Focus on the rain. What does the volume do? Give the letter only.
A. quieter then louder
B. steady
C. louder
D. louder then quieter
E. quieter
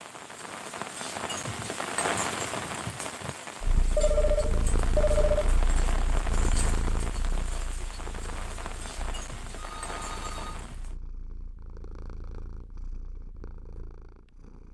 E.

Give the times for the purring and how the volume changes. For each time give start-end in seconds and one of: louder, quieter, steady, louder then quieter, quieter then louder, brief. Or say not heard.
3.6-14.6 quieter.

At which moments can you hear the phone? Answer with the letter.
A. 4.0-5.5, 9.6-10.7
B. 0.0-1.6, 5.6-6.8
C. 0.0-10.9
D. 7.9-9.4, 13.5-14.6
A.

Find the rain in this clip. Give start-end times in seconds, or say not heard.
0.0-10.9.